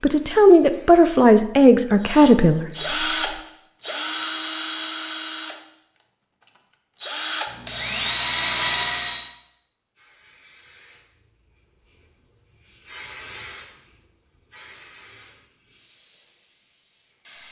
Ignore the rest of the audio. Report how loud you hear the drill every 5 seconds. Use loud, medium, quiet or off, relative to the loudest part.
loud, loud, off, off.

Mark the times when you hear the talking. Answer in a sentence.
The talking can be heard from 0.0 to 3.3 s.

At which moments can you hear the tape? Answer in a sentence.
The tape can't be heard in this clip.